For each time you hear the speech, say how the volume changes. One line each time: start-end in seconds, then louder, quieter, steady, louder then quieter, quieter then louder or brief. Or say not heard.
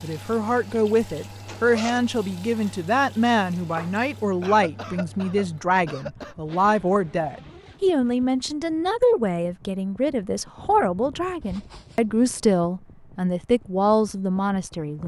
0.0-15.0 steady.